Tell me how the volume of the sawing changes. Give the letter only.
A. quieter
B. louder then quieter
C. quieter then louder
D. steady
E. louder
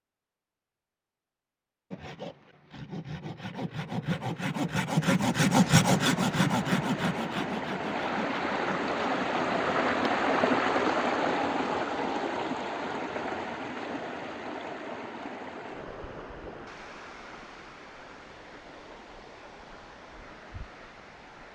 B.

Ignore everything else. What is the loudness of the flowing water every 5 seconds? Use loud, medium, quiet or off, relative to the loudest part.
off, loud, loud, quiet, quiet.